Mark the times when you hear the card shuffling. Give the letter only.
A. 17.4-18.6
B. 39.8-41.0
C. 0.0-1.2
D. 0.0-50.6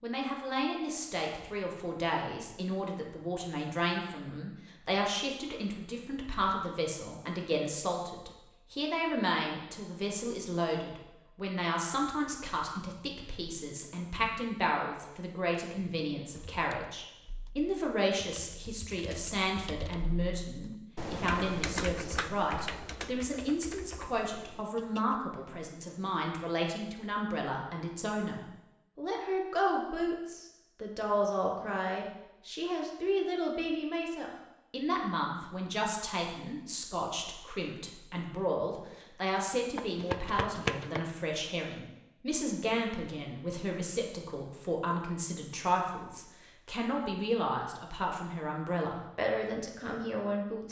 B.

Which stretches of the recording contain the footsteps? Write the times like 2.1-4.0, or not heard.
not heard.